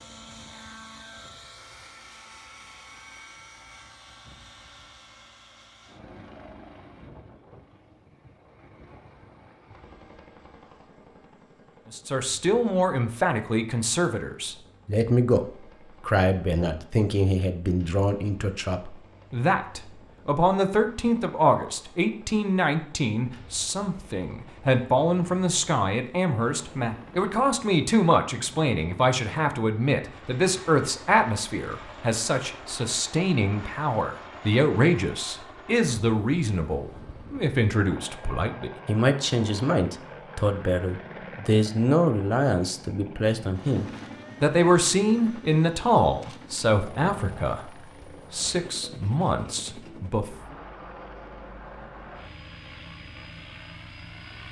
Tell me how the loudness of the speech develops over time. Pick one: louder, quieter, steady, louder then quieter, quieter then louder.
steady.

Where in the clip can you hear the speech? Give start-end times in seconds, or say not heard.
11.9-50.4.